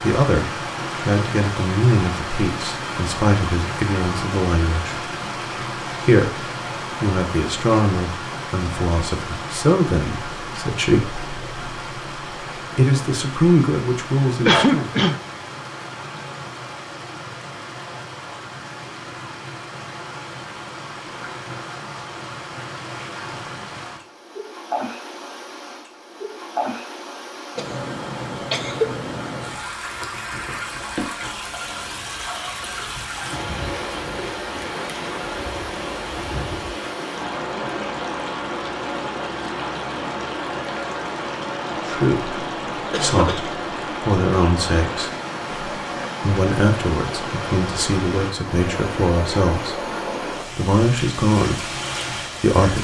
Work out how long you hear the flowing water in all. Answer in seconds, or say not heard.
53 s.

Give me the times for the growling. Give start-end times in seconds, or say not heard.
not heard.